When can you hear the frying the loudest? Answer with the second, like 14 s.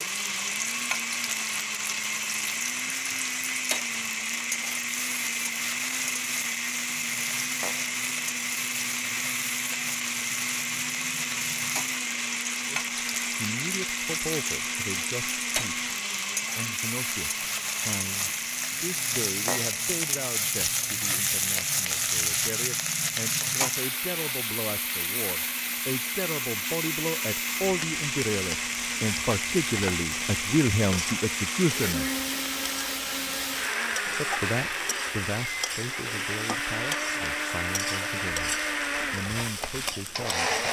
22 s.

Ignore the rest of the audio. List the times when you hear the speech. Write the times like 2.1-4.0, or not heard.
12.7-15.8, 16.6-32.1, 34.0-40.6.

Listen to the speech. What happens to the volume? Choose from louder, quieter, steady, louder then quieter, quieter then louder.
louder then quieter.